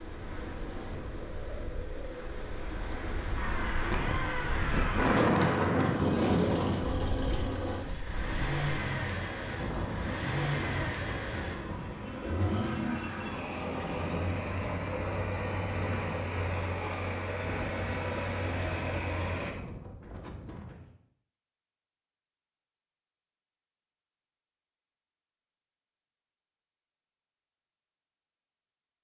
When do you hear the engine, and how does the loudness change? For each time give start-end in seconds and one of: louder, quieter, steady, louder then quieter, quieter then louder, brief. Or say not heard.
3.4-19.5 steady.